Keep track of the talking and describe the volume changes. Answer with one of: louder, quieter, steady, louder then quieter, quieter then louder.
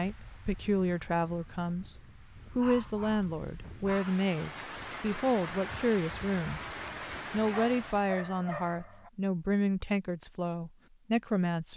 steady.